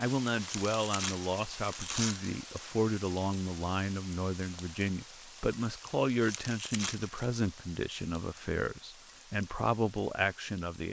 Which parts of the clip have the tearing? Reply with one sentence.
You can hear the tearing from 0.4 to 2.3 s and from 6.2 to 7.2 s.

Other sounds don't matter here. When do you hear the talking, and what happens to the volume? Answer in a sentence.
The talking can be heard from 0.0 to 10.8 s, at a steady volume.